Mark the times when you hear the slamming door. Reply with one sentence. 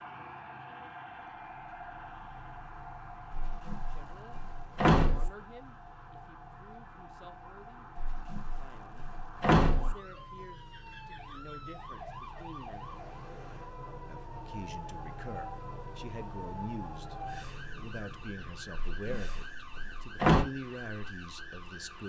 The slamming door can be heard from 3.3 to 5.3 s, from 8.0 to 9.9 s and from 18.9 to 20.4 s.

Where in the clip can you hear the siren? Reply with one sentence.
The siren can be heard from 0.0 to 22.0 s.